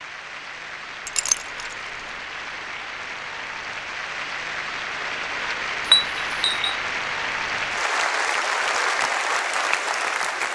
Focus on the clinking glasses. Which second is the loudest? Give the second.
6 s.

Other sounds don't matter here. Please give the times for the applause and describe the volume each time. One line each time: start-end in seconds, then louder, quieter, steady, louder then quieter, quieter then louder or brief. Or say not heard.
0.0-10.4 louder.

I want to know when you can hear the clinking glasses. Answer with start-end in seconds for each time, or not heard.
1.1-1.8, 5.8-6.8.